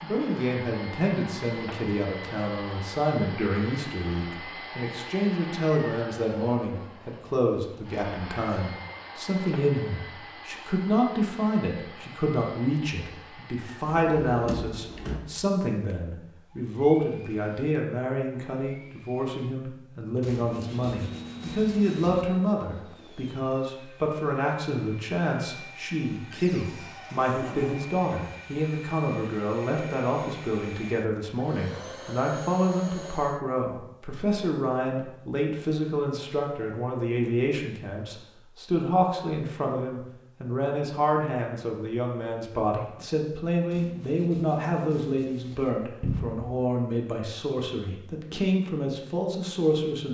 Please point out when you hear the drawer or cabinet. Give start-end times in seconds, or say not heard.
13.8-15.2, 26.3-27.8, 46.0-46.5.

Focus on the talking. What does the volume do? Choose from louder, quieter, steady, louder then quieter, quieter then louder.
steady.